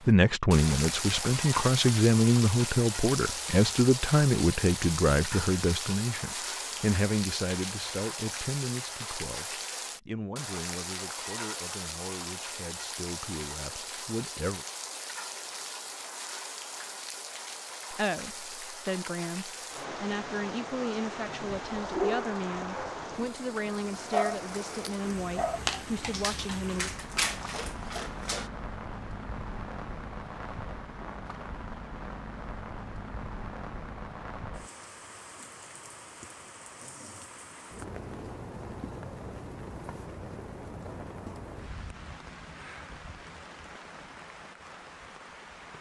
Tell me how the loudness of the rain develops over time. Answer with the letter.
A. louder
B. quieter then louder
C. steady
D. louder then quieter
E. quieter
E.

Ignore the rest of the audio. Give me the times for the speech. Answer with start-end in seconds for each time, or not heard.
0.1-14.7, 17.9-26.9.